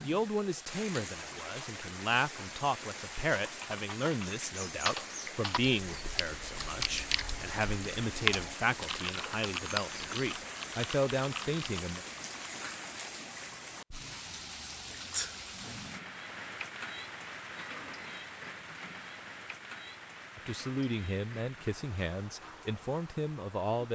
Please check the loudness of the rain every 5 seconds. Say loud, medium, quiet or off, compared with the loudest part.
loud, loud, loud, loud, medium.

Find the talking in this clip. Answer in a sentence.
You can hear the talking from 0.0 to 12.0 s and from 20.4 to 23.9 s.